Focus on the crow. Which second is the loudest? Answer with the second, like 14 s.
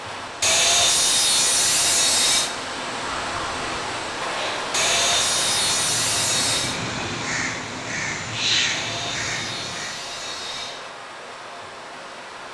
9 s.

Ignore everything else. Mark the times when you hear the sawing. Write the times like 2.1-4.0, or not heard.
0.4-2.5, 4.7-6.8, 8.7-10.8.